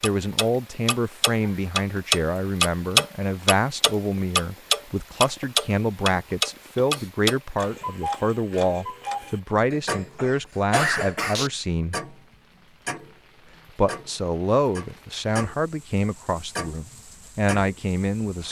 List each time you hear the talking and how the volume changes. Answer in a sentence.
You can hear the talking from 0.0 to 11.9 s, at a steady volume; and from 13.8 to 18.4 s, getting quieter then louder.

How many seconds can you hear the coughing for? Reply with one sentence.
The coughing can be heard for 2 seconds in total.